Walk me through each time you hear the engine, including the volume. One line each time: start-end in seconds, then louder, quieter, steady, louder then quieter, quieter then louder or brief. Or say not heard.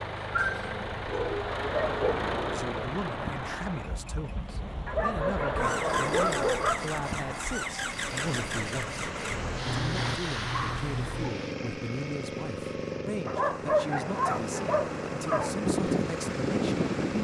0.0-17.2 steady.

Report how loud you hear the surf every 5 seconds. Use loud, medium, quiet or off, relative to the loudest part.
medium, medium, medium, loud.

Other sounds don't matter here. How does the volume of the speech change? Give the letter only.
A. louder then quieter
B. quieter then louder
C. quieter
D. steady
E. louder
D.